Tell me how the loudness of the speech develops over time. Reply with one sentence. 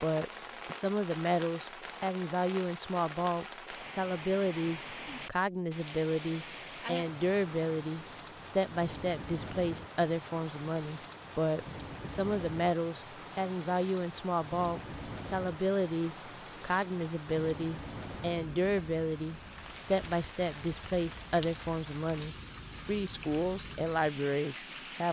The volume of the speech stays about the same.